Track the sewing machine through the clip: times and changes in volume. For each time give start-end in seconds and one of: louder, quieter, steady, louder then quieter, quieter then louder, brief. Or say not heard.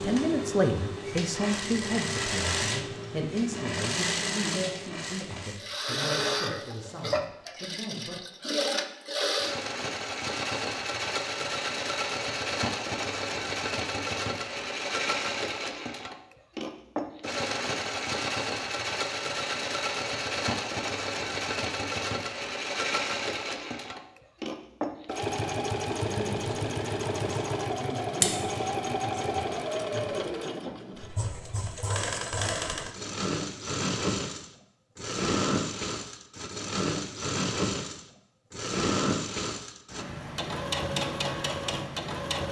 0.0-42.4 steady.